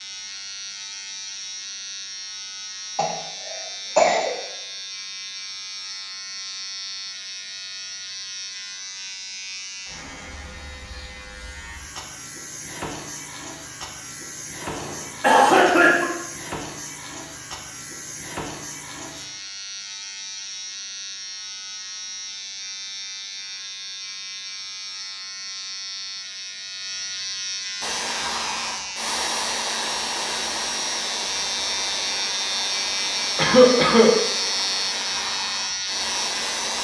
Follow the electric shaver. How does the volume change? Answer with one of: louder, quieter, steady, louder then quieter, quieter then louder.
louder.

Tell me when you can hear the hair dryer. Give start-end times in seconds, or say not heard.
27.8-36.7.